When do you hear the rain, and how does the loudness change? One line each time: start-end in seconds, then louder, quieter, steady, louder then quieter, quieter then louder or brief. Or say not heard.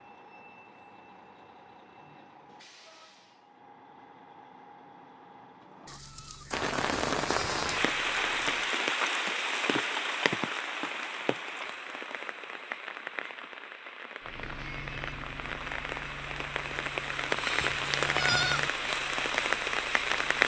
6.5-20.4 quieter then louder.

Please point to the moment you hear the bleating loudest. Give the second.
18 s.